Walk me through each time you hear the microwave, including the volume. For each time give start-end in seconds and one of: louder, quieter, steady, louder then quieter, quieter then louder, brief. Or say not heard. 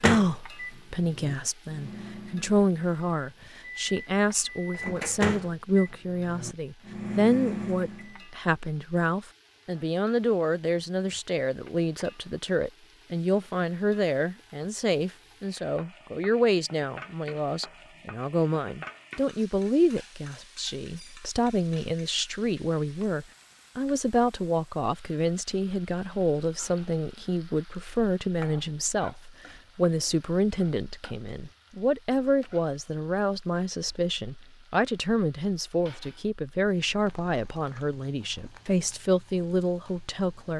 0.0-8.2 louder.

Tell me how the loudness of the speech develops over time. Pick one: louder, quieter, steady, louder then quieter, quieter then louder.
steady.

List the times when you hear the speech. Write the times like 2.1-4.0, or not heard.
0.0-40.5.